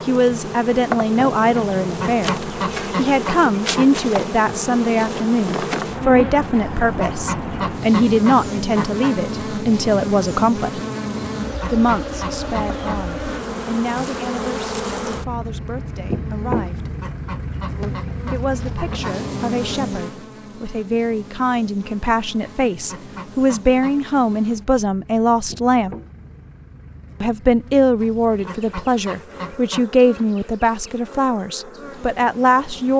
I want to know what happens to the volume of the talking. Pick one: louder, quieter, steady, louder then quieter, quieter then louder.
quieter then louder.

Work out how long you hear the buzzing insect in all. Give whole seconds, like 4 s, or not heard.
33 s.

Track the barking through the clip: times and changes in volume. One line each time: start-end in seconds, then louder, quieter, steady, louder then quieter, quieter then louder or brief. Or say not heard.
not heard.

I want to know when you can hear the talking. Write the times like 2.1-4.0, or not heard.
0.1-10.8, 11.7-16.9, 18.3-25.9, 27.2-32.9.